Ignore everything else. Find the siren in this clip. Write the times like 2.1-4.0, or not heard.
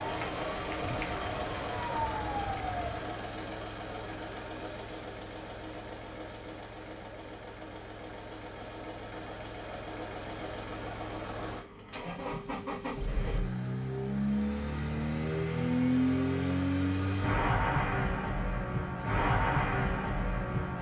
0.0-3.1.